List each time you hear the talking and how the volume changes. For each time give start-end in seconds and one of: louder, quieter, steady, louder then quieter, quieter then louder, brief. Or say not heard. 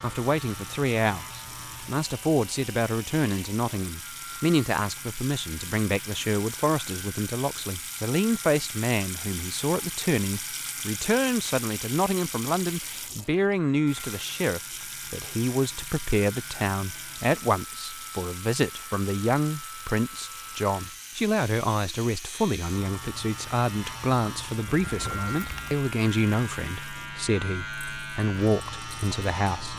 0.0-29.7 steady.